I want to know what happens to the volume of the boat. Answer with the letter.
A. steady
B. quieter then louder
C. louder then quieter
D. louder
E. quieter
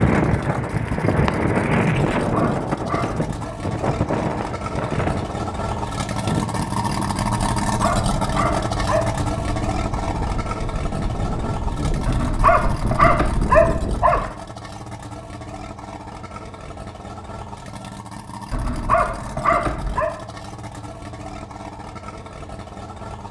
C.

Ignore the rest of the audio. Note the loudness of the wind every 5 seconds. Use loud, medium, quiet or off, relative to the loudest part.
loud, medium, medium, off, off.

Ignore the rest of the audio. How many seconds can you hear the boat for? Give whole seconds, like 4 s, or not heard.
23 s.